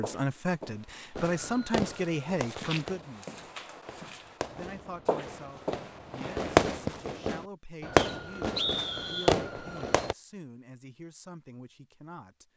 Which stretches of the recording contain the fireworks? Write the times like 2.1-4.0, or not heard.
1.1-10.2.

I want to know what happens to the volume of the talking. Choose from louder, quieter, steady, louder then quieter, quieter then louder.
quieter.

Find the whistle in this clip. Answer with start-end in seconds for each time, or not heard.
8.0-9.3.